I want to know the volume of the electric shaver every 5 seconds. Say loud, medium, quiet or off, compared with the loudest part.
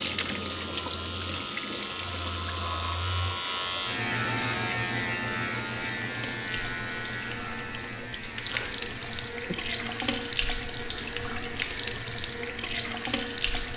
loud, loud, medium.